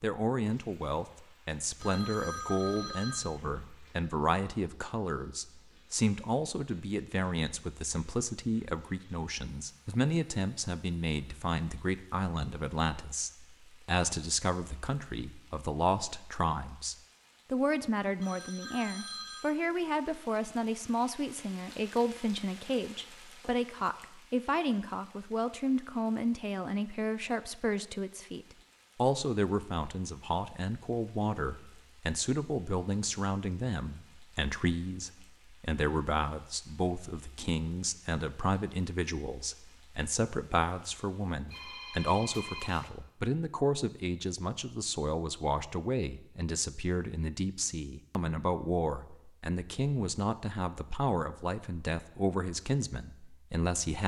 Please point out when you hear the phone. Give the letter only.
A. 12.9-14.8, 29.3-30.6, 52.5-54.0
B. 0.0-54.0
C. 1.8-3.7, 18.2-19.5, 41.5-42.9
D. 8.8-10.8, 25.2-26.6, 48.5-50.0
C.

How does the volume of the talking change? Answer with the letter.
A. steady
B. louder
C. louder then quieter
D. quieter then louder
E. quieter
A.